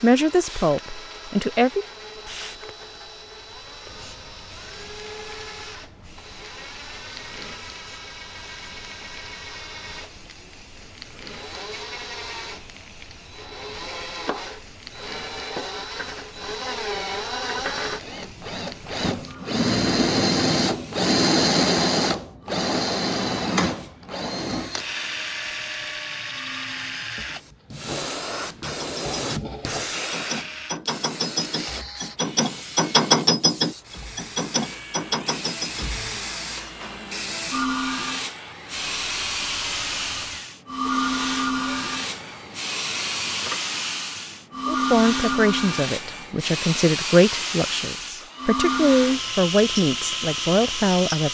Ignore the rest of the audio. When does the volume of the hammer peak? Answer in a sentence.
The loudest moment of the hammer is at 33 seconds.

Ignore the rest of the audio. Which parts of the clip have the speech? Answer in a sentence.
You can hear the speech from 0.0 to 1.9 s and from 44.6 to 51.3 s.